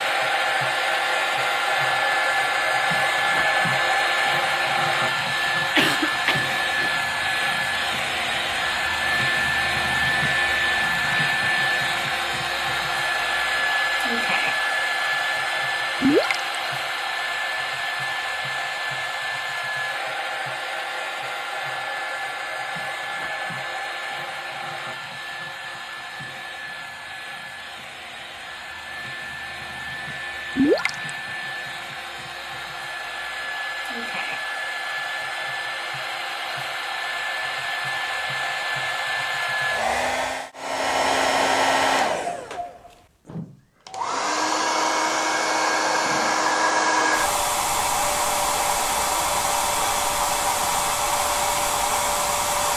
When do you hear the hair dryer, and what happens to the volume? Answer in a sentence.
You can hear the hair dryer from 0.0 to 52.7 s, getting quieter then louder.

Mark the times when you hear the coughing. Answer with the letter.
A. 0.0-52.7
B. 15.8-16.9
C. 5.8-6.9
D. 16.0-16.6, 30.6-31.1
C.